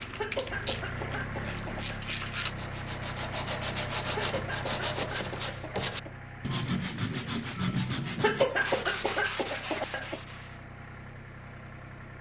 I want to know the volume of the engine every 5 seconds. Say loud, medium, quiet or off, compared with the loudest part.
loud, medium, medium.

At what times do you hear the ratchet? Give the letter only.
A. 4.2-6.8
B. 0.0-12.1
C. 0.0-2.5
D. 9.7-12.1
C.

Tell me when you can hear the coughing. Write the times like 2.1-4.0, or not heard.
0.1-2.0, 4.1-6.2, 8.2-10.2.